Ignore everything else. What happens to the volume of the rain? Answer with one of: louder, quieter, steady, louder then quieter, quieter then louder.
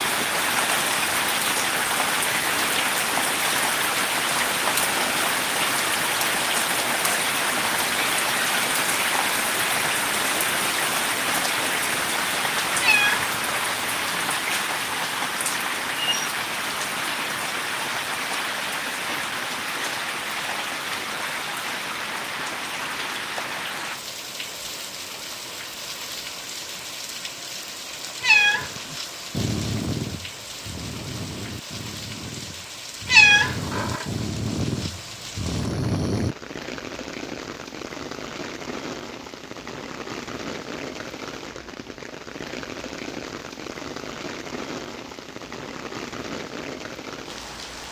quieter.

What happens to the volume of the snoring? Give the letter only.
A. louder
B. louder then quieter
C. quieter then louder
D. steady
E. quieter
C.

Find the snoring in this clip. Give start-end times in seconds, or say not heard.
28.9-36.4.